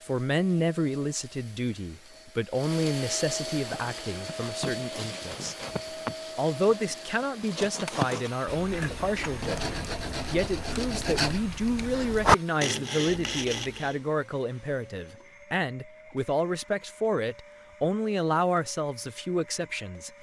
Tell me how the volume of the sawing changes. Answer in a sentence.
The volume of the sawing goes up.